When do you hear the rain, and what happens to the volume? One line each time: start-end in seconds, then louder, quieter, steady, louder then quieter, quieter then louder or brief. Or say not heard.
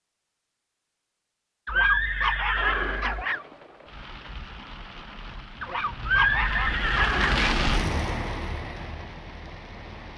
2.5-10.1 louder then quieter.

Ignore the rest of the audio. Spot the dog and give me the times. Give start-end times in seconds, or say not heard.
1.6-3.5, 5.6-7.4.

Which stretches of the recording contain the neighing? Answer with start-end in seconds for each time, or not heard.
1.6-3.2, 6.0-7.4.